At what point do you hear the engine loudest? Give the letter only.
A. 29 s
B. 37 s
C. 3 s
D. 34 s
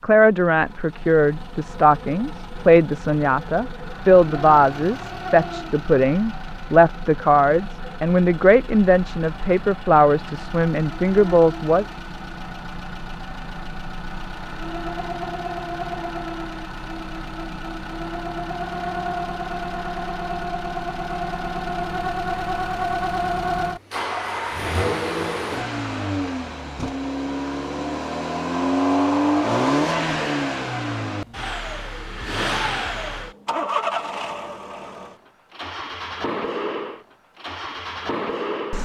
A.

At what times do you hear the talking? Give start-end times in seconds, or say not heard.
0.0-11.8.